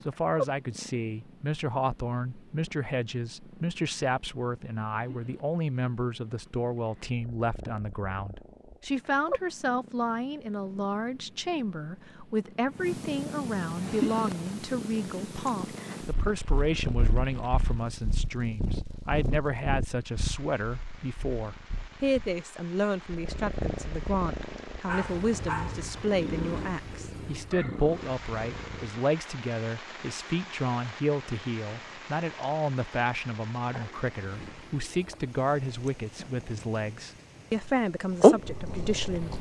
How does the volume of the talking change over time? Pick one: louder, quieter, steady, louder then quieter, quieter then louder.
steady.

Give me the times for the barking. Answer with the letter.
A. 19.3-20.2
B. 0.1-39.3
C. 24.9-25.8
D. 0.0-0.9
C.